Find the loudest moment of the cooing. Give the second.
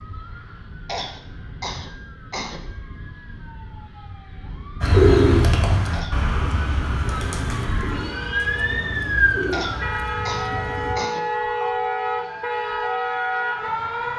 5 s.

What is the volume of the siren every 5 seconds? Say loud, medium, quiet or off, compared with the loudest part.
quiet, loud, loud.